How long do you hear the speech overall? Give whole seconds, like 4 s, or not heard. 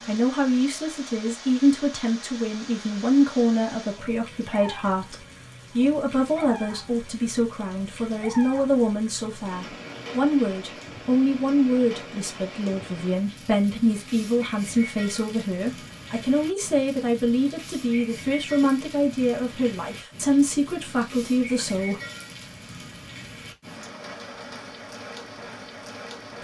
22 s.